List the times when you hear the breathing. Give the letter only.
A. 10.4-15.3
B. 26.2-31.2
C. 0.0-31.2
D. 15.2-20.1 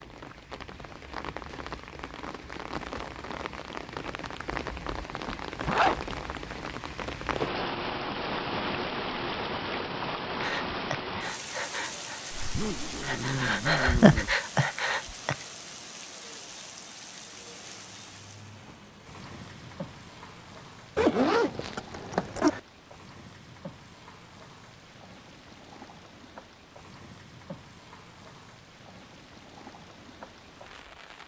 A.